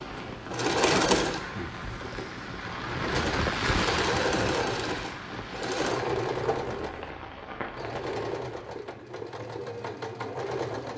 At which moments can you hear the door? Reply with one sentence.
You can hear the door from 0.7 to 1.7 s and from 6.5 to 7.0 s.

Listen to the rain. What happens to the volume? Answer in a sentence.
The loudness of the rain goes up, then down.